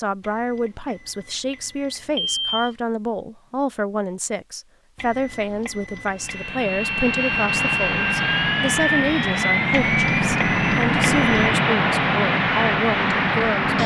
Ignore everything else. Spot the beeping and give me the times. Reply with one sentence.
The beeping can be heard from 0.2 to 2.8 s, from 5.0 to 6.5 s and from 9.7 to 11.6 s.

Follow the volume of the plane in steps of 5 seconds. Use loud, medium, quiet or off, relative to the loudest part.
off, loud, loud.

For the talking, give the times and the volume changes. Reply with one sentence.
The talking can be heard from 0.0 to 13.8 s, at a steady volume.